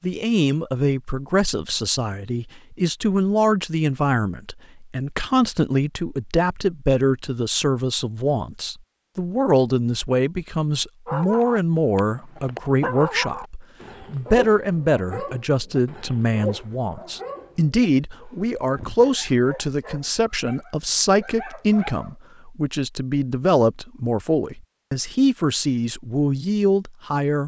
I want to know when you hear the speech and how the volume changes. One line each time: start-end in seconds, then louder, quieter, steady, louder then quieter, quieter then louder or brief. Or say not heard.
0.0-27.4 steady.